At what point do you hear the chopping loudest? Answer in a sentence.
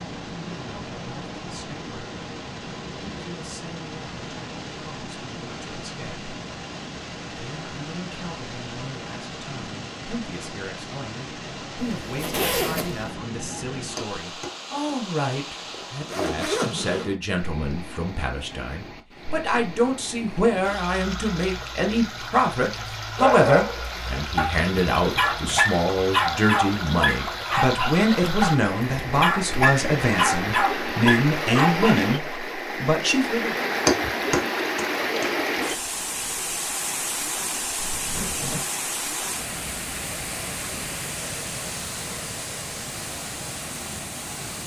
The loudest moment of the chopping is at 34 seconds.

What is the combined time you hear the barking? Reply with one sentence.
The barking can be heard for 9 seconds in total.